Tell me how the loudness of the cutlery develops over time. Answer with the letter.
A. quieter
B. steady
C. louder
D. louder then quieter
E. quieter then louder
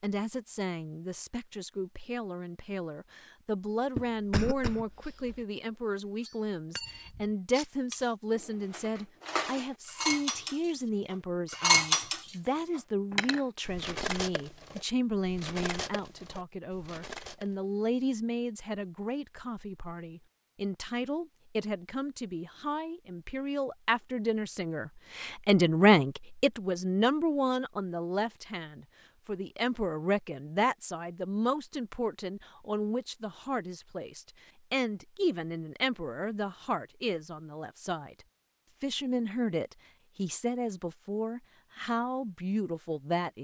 D.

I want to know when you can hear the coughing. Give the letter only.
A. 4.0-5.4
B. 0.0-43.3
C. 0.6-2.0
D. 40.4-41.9
A.